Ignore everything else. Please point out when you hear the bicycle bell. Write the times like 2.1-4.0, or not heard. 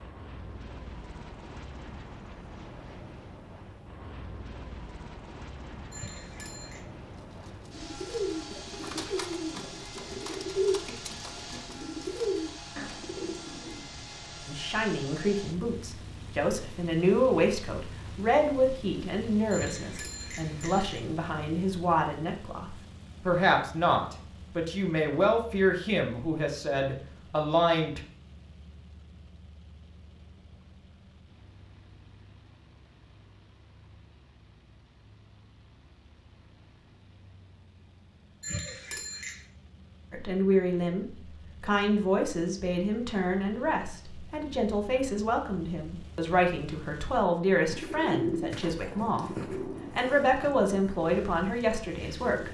5.9-6.8, 19.5-21.0, 38.4-39.4.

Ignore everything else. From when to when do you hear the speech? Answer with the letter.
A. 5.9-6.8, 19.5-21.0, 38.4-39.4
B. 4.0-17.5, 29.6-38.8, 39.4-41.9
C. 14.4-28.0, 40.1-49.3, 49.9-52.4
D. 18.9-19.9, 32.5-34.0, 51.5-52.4
C.